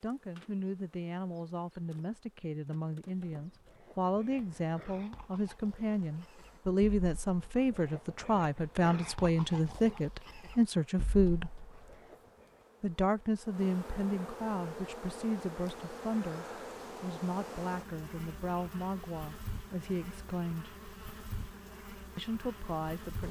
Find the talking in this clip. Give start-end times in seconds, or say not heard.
0.0-11.6, 12.8-20.8, 22.1-23.2.